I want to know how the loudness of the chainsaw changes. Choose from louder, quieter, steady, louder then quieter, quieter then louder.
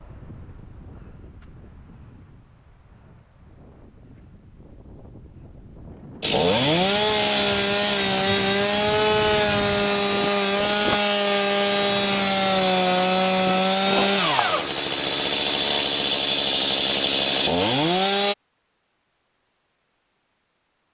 steady.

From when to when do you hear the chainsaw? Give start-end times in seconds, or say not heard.
6.2-18.4.